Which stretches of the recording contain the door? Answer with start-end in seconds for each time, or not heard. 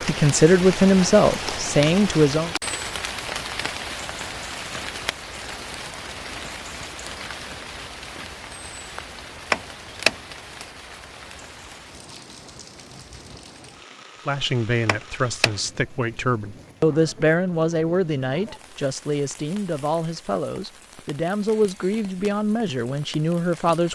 9.5-10.2, 14.8-15.6.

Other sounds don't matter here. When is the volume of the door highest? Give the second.
10 s.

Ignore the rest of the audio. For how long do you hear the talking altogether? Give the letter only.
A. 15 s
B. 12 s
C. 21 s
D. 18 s
B.